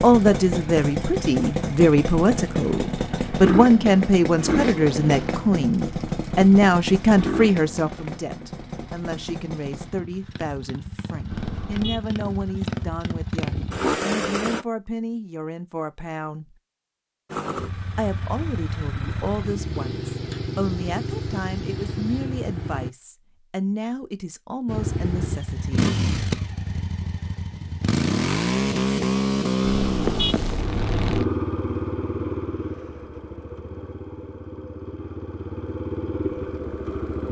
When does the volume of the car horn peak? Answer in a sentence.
The volume of the car horn peaks at 30 seconds.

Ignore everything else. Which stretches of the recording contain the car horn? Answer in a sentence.
The car horn can be heard from 11.2 to 12.0 s and from 29.6 to 31.2 s.